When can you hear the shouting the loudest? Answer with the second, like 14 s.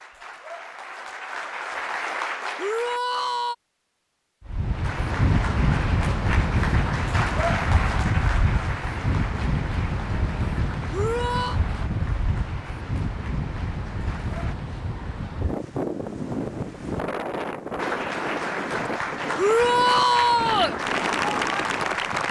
20 s.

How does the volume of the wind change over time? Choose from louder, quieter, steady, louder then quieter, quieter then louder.
quieter.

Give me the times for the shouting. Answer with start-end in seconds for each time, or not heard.
2.5-3.5, 10.9-11.6, 19.4-20.8.